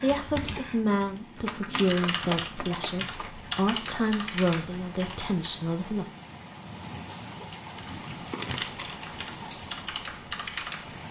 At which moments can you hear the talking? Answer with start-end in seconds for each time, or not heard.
0.0-6.2.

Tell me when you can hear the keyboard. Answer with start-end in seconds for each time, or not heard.
0.0-5.5, 7.7-11.0.